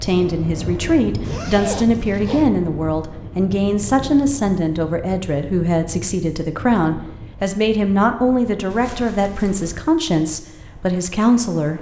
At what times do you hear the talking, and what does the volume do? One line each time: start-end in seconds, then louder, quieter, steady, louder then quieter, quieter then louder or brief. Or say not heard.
0.0-11.7 steady.